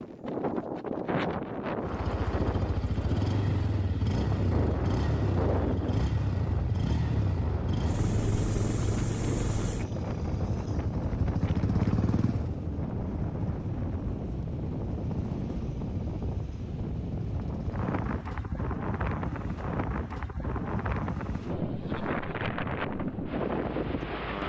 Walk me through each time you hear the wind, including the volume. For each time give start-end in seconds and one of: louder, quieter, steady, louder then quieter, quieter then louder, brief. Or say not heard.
0.0-24.4 steady.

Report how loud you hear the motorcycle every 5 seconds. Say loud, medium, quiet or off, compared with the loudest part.
loud, loud, loud, medium, medium.